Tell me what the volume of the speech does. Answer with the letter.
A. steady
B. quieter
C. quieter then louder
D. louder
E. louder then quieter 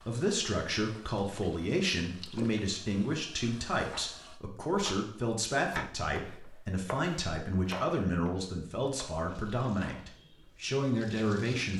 A.